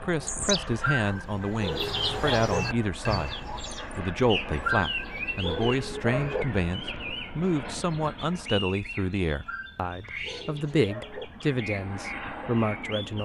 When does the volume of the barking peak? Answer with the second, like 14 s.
5 s.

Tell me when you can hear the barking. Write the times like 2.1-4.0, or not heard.
0.8-2.6, 4.6-6.5, 9.4-11.2.